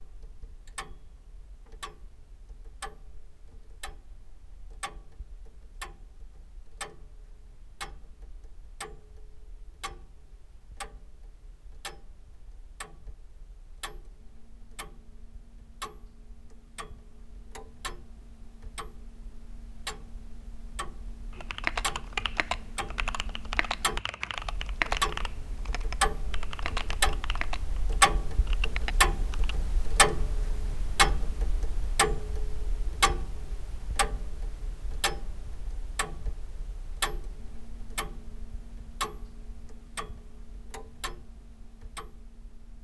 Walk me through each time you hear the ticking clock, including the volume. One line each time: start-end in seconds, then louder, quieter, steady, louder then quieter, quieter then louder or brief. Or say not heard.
0.0-42.7 louder then quieter.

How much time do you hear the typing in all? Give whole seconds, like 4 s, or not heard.
8 s.